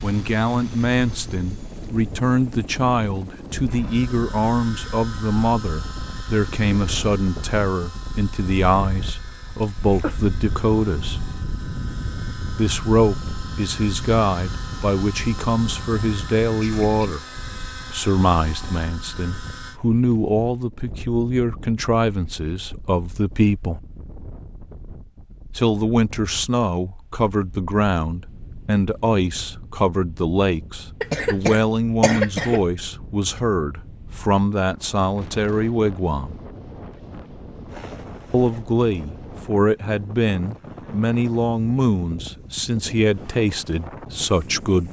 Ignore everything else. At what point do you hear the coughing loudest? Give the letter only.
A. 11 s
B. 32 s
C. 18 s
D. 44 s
B.